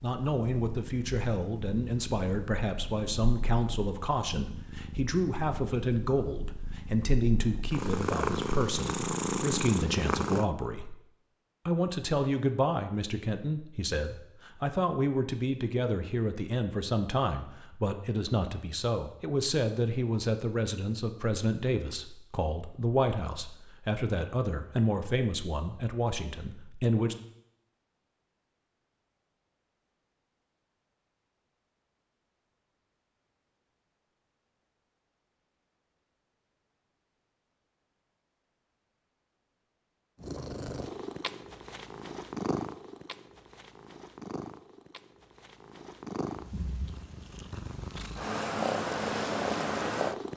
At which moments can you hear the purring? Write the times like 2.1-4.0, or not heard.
0.0-10.4, 40.2-50.3.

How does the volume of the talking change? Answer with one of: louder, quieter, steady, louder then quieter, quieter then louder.
steady.